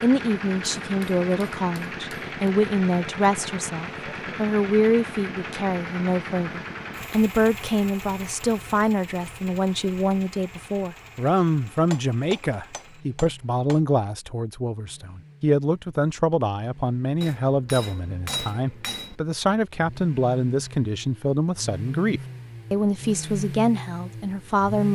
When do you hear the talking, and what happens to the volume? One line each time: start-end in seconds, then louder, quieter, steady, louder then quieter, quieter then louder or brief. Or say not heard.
0.0-24.9 steady.